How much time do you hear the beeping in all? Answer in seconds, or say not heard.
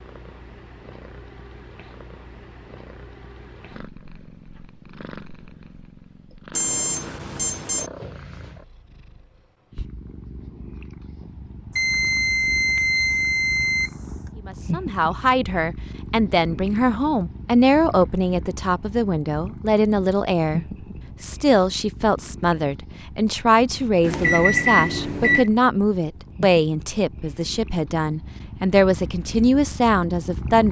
5 s.